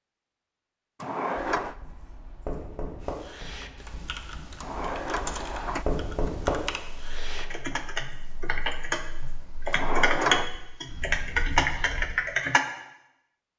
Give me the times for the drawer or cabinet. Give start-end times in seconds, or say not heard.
1.0-1.8, 4.6-5.8, 9.7-10.5.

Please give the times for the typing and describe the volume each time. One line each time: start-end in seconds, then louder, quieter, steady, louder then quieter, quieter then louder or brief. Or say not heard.
3.0-12.7 louder.